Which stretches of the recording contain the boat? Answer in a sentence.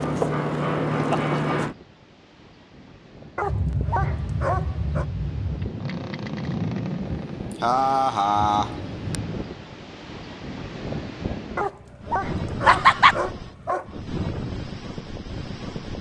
You can hear the boat from 0.0 to 1.8 s and from 3.4 to 9.4 s.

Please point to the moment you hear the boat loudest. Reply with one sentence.
The volume of the boat peaks at 1 second.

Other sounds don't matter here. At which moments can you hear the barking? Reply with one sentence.
You can hear the barking from 3.4 to 5.0 s and from 11.6 to 14.1 s.